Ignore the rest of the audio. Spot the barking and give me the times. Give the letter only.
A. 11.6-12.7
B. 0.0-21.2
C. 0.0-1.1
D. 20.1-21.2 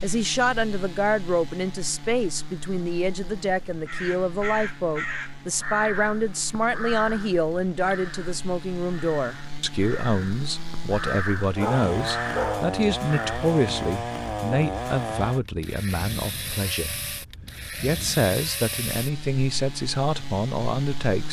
A.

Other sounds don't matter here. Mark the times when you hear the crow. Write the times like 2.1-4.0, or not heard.
3.9-13.4.